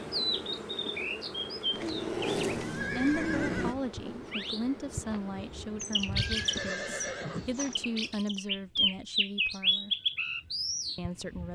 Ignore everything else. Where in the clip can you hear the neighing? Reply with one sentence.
You can hear the neighing from 1.7 to 3.8 s and from 6.2 to 7.8 s.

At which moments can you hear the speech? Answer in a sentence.
You can hear the speech from 3.0 to 9.9 s and from 10.9 to 11.4 s.